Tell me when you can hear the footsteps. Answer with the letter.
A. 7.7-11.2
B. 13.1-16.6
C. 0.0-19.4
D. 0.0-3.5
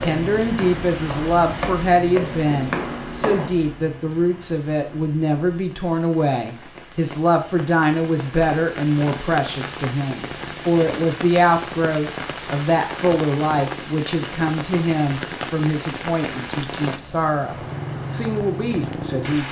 D.